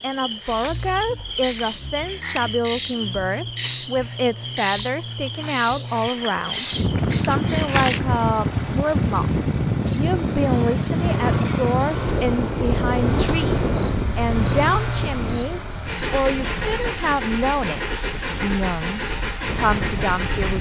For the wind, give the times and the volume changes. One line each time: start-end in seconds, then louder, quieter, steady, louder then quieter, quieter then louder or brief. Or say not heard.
6.7-20.5 quieter.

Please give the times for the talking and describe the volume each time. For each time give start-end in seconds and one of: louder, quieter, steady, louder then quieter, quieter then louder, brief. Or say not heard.
0.0-20.5 steady.